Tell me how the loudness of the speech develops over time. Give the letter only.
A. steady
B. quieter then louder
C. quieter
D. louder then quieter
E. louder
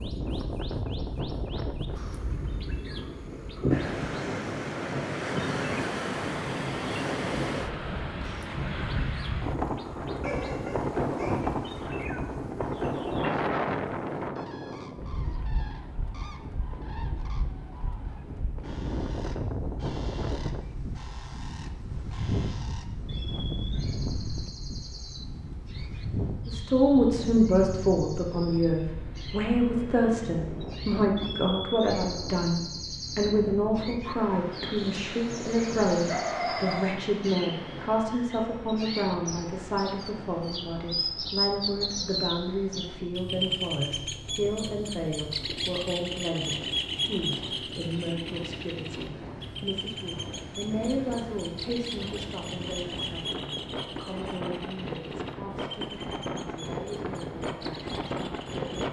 C.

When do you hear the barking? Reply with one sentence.
The barking can be heard from 10.2 to 11.8 s and from 34.8 to 37.0 s.